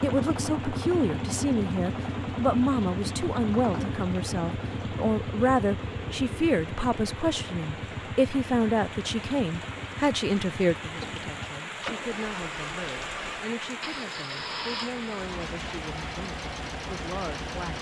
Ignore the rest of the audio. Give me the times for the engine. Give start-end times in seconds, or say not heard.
0.0-17.7.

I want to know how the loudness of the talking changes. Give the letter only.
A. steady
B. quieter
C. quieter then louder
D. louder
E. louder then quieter
B.